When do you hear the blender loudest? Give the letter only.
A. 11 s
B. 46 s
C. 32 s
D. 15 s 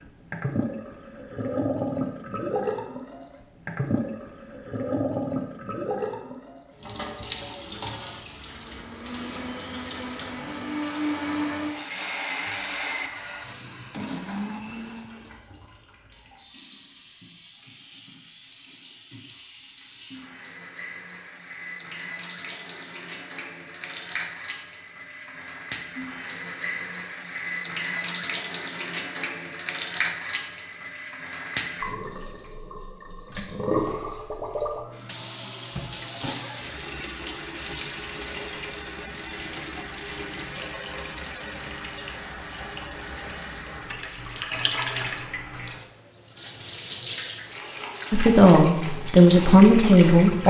A.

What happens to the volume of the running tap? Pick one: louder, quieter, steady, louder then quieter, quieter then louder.
quieter then louder.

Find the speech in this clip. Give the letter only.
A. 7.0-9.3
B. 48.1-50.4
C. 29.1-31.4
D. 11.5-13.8
B.